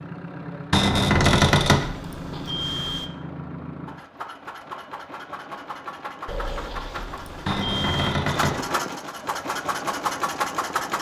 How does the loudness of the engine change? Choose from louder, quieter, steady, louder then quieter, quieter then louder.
louder.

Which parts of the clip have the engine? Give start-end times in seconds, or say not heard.
0.0-10.9.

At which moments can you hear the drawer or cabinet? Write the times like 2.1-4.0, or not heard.
0.7-1.9, 7.5-8.6.